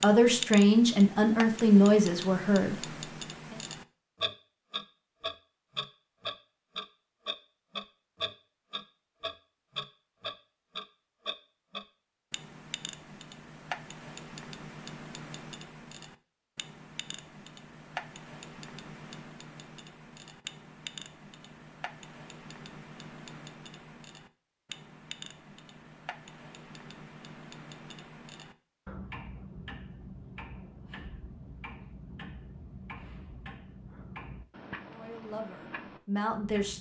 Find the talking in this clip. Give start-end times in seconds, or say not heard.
0.0-2.8, 34.9-36.7.